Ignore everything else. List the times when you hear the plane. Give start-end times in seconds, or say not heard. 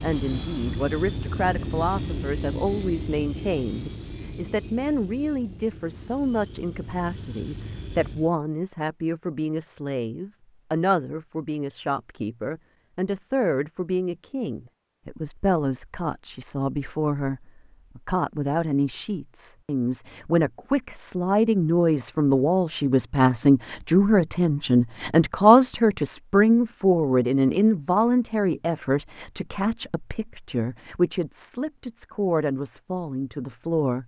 0.0-8.3.